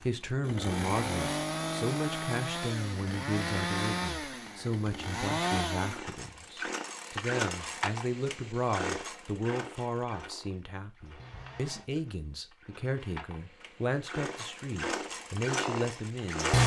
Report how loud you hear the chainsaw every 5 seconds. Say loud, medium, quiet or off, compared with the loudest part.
medium, medium, quiet, loud.